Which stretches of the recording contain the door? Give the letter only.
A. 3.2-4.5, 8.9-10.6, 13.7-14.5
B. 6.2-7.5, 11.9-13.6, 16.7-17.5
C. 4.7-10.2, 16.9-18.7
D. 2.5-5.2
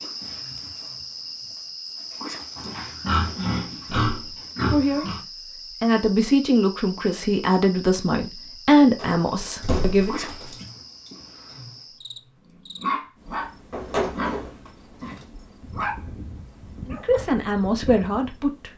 A.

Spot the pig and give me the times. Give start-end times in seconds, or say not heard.
2.5-5.2.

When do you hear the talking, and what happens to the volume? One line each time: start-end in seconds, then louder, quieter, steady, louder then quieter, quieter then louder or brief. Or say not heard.
4.7-10.2 steady
16.9-18.7 brief.